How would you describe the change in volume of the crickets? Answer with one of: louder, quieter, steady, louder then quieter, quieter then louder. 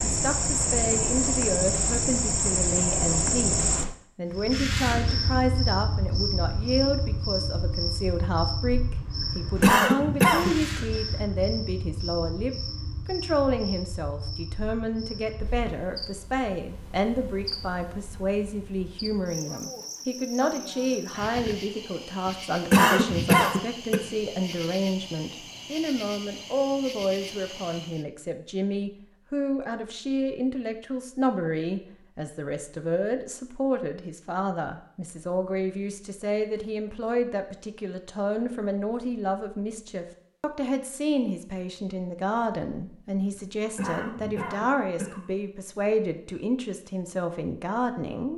quieter.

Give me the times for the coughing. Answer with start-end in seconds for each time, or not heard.
9.2-10.5, 22.2-24.0, 43.3-45.2.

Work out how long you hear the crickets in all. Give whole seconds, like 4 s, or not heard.
28 s.